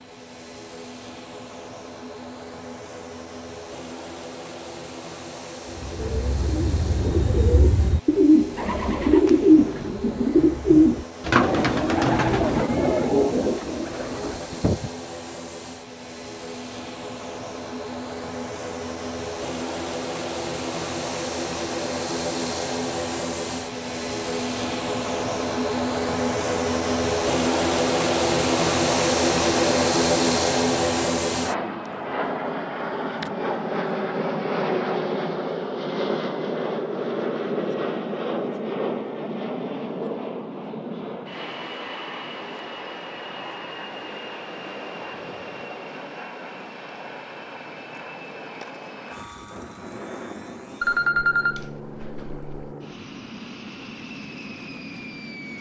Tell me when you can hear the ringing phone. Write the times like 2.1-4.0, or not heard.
50.8-52.8.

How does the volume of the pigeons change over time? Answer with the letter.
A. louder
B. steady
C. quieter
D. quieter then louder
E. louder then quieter
E.